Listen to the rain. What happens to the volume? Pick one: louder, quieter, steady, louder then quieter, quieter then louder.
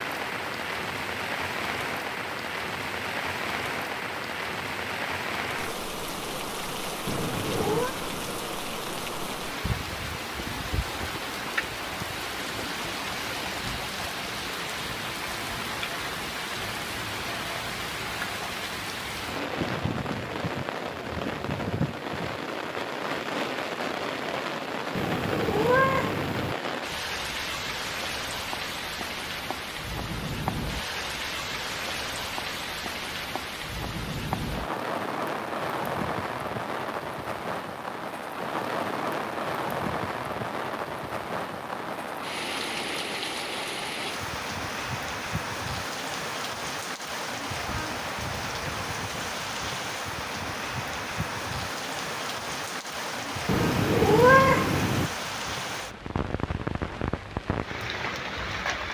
steady.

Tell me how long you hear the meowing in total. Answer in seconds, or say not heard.
4 s.